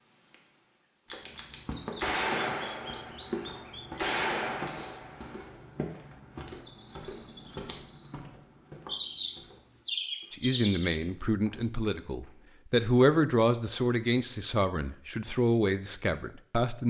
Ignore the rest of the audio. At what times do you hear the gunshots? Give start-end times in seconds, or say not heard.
1.1-5.5.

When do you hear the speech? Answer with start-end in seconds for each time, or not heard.
10.3-16.8.